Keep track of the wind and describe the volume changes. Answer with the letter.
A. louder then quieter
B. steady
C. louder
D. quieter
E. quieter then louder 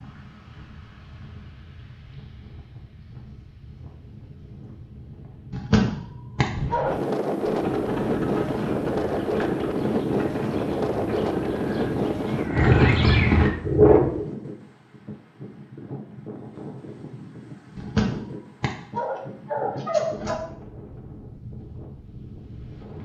A.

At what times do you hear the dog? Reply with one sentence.
You can hear the dog from 5.5 to 7.0 s and from 17.8 to 20.4 s.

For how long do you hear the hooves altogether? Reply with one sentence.
You can hear the hooves for 7 seconds altogether.